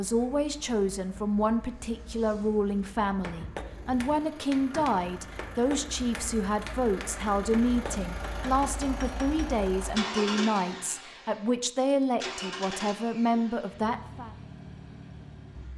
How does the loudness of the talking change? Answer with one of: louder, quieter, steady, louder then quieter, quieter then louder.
steady.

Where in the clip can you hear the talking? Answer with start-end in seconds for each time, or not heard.
0.0-14.3.